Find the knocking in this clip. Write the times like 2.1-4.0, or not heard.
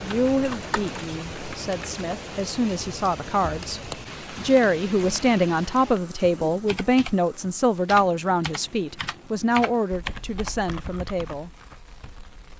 not heard.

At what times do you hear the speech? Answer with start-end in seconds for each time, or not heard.
0.0-3.8, 4.4-11.5.